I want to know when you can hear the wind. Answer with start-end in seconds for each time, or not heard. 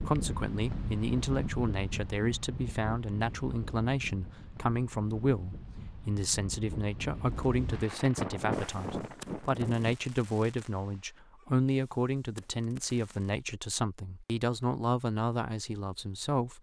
0.0-9.9.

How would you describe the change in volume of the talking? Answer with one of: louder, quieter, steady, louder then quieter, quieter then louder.
steady.